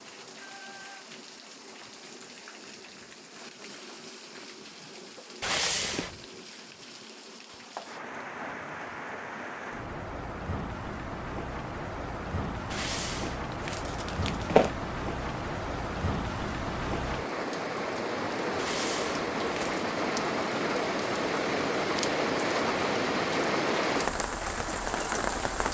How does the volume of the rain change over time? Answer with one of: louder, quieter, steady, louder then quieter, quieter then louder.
louder.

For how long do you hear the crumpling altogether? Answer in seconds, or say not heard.
4 s.